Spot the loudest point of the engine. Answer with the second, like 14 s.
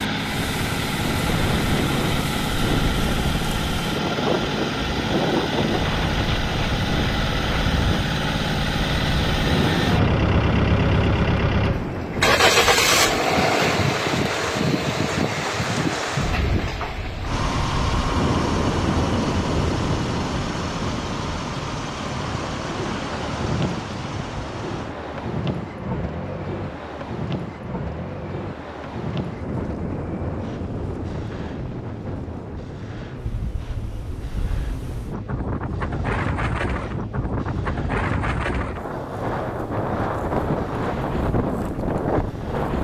13 s.